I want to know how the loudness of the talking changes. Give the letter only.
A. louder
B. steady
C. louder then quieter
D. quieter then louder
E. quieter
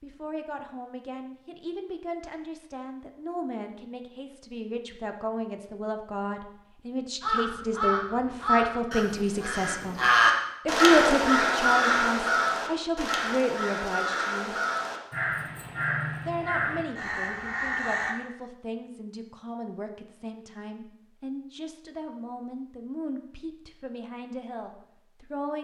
C.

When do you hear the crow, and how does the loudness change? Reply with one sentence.
The crow can be heard from 7.2 to 18.1 s, getting louder then quieter.